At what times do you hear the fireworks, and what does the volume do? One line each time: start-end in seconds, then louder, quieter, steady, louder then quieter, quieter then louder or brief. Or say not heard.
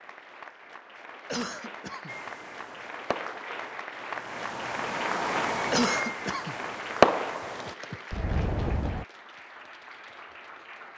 2.0-9.1 louder then quieter.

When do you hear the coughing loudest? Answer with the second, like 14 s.
6 s.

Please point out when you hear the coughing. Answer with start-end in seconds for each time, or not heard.
1.2-2.1, 5.7-6.5.